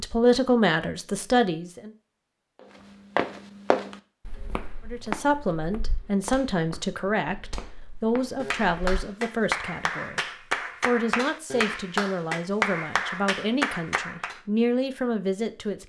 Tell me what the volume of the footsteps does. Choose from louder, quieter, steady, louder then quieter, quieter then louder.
quieter.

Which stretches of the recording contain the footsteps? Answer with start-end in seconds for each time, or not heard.
3.1-9.0.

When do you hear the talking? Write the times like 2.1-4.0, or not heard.
0.0-1.9, 4.8-15.8.